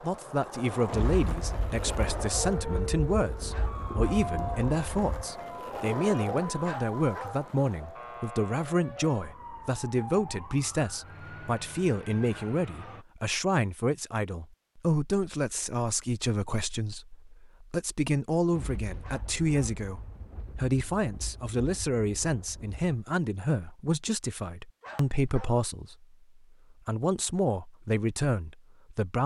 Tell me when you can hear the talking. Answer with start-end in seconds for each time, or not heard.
0.0-29.2.